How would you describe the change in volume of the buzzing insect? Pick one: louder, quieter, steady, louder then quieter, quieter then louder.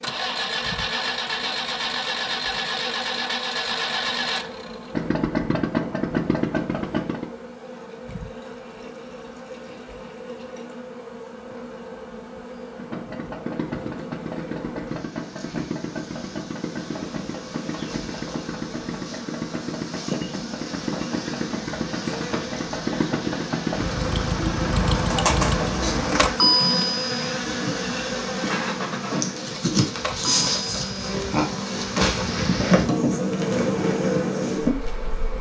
louder.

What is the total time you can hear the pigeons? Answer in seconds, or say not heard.
2 s.